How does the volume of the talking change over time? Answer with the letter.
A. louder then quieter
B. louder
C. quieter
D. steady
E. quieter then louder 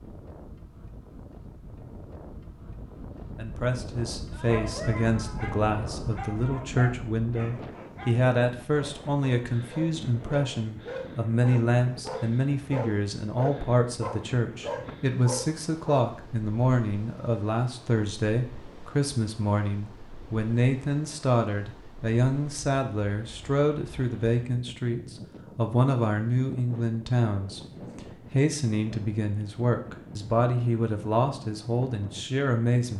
D.